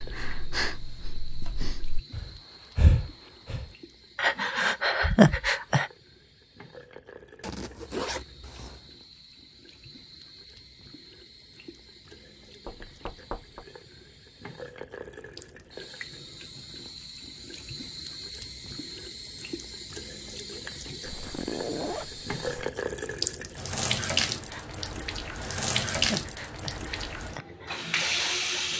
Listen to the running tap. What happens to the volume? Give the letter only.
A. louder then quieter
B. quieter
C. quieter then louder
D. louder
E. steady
D.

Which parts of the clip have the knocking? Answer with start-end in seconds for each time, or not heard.
12.7-13.7.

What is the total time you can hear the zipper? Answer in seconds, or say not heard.
3 s.